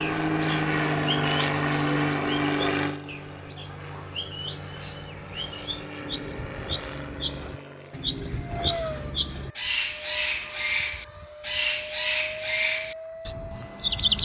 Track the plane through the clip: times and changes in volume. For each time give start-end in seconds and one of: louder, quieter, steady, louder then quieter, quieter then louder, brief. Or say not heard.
0.0-14.2 quieter.